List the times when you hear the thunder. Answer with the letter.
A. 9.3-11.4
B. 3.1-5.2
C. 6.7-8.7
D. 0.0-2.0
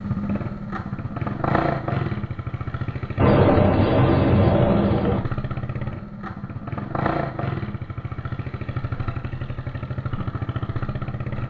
B.